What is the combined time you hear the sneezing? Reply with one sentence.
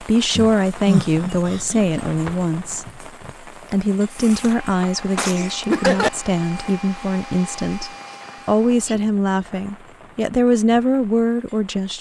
You can hear the sneezing for 4 seconds altogether.